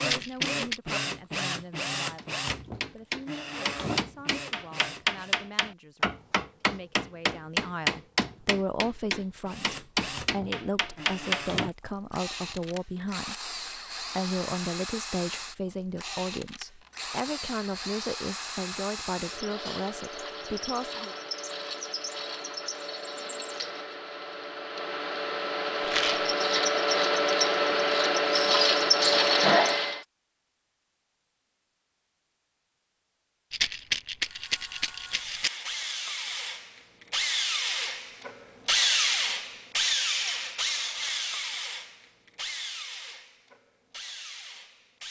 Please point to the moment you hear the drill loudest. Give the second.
29 s.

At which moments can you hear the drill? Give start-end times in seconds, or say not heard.
0.0-5.4, 9.4-30.1, 34.2-45.0.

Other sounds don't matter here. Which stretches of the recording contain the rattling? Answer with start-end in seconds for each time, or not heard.
0.0-0.8, 25.8-26.3, 33.5-35.5.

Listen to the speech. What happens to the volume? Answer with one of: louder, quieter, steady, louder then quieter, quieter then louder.
louder.